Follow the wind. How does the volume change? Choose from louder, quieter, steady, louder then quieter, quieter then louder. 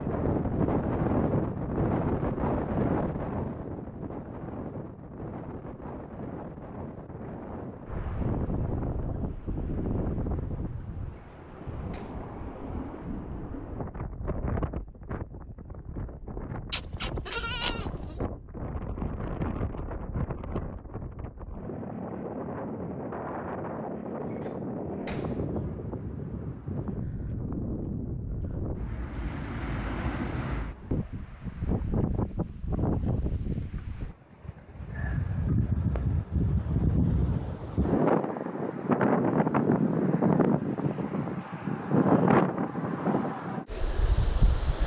quieter then louder.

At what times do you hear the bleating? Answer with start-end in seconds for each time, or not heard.
16.7-18.2.